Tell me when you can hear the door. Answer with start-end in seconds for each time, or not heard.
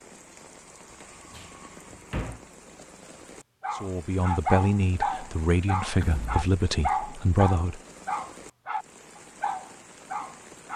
1.3-2.4, 6.0-6.5.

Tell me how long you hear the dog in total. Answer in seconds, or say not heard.
7 s.